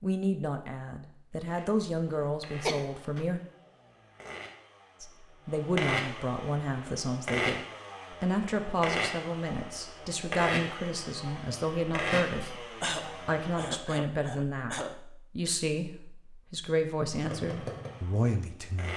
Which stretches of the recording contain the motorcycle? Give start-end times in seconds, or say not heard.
1.4-13.9, 17.1-18.9.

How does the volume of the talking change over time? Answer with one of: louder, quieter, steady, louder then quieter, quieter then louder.
steady.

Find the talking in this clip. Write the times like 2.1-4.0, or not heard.
0.0-3.4, 5.0-18.9.